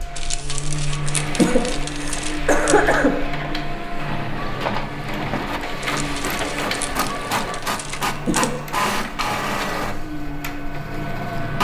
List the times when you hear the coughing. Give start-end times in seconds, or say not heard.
1.4-3.1, 8.2-8.8.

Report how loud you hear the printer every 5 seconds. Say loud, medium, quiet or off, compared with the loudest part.
medium, loud, loud.